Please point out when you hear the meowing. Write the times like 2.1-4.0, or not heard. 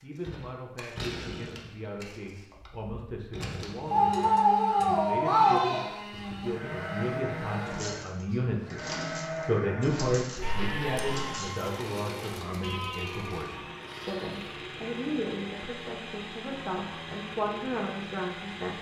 3.9-5.8, 10.3-11.1.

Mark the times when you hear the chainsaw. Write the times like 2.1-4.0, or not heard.
0.0-18.7.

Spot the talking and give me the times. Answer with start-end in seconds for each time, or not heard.
0.0-18.7.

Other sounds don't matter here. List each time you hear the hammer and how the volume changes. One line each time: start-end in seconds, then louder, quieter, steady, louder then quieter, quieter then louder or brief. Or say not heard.
not heard.